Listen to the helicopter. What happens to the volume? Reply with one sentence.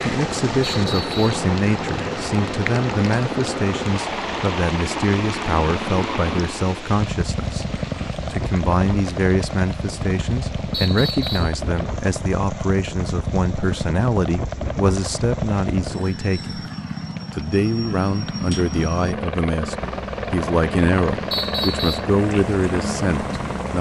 The volume of the helicopter stays about the same.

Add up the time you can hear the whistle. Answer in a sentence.
You can hear the whistle for 2 seconds altogether.